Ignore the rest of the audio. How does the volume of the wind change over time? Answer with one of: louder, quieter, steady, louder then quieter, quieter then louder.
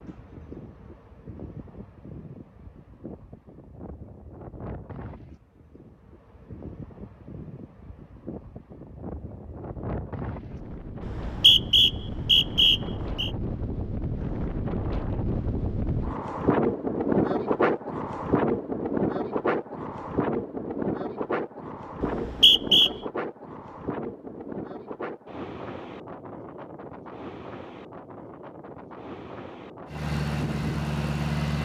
louder then quieter.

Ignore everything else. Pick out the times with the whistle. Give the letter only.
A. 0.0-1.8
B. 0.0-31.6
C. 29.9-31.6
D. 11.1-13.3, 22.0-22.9
D.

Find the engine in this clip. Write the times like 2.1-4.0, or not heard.
29.9-31.6.